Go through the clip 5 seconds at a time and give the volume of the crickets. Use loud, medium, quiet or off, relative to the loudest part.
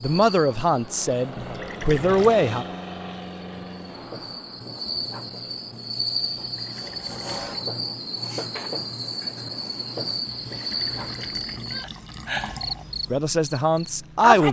medium, loud, loud.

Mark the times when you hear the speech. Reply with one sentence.
You can hear the speech from 0.0 to 2.6 s and from 13.1 to 14.4 s.